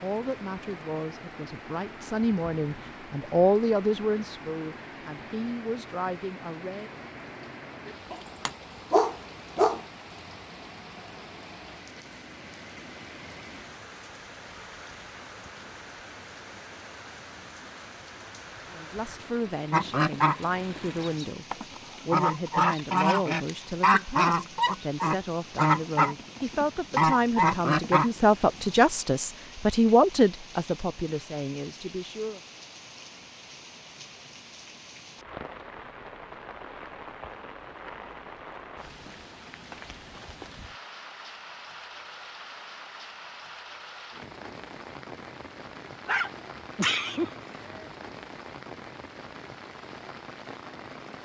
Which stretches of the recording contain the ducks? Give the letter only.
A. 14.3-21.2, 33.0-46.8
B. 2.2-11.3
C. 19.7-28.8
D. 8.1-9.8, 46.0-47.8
C.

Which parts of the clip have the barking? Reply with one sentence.
You can hear the barking from 8.1 to 9.8 s and from 46.0 to 47.8 s.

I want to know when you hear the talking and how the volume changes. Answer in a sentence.
The talking can be heard from 0.0 to 6.9 s, getting louder then quieter; and from 18.7 to 32.4 s, getting louder.